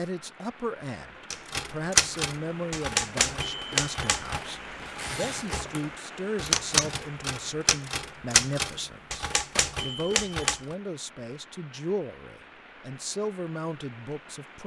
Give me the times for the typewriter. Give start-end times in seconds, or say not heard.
1.3-10.6.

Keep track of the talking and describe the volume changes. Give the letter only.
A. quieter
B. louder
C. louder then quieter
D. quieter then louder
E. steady
E.